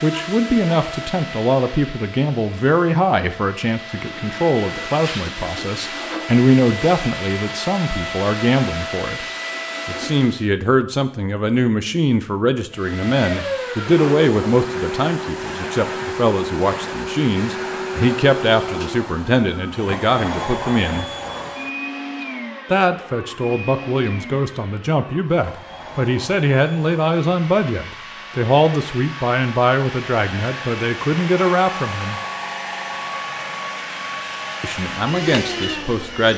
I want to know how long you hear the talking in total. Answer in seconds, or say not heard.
32 s.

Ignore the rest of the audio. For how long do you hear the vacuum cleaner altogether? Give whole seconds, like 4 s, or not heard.
34 s.